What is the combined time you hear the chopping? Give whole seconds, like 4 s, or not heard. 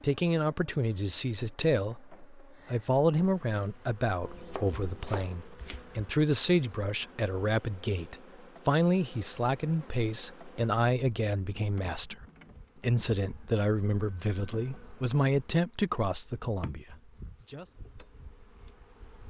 2 s.